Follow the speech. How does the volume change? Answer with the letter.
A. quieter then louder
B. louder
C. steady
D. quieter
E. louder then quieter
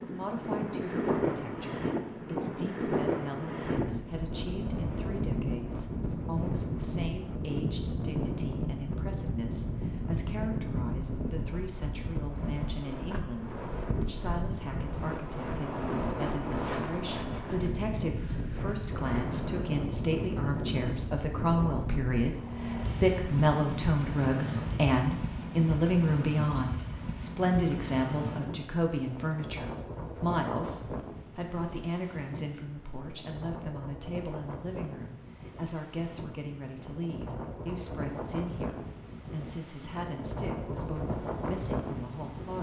E.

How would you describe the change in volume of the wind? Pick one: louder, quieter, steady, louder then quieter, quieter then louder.
quieter.